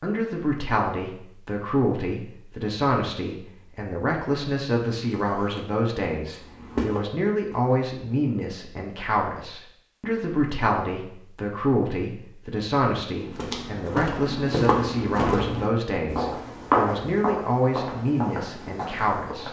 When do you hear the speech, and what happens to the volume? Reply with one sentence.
The speech can be heard from 0.0 to 19.4 s, at a steady volume.